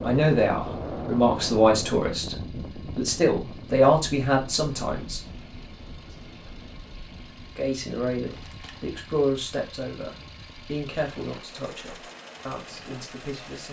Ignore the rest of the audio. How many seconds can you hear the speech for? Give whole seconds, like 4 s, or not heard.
11 s.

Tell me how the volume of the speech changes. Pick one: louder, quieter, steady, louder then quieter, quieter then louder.
quieter.